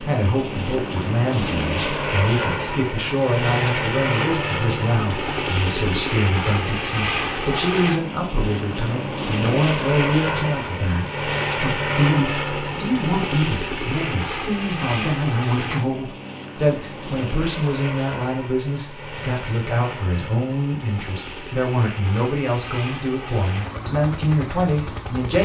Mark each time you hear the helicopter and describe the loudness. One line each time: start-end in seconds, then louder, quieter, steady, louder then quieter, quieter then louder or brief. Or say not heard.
0.0-25.3 quieter.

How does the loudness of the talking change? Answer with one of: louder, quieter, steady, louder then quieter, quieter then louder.
steady.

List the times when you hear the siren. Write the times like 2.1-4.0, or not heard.
not heard.